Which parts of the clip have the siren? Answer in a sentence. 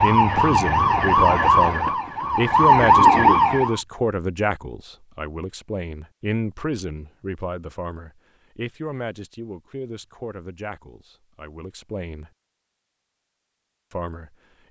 The siren can be heard from 0.0 to 3.8 s.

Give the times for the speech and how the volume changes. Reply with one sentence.
You can hear the speech from 0.0 to 12.3 s, getting quieter; and briefly from 13.9 to 14.6 s.